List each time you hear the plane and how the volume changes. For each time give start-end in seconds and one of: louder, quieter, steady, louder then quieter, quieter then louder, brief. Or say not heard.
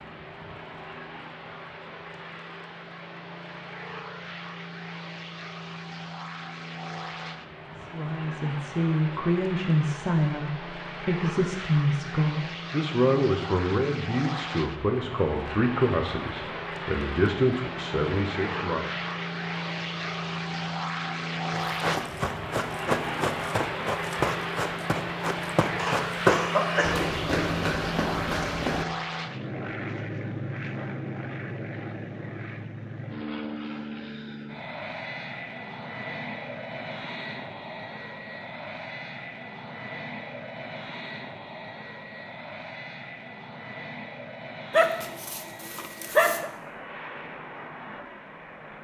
0.0-48.7 louder then quieter.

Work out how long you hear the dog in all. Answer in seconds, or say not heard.
2 s.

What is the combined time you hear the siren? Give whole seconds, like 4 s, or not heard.
not heard.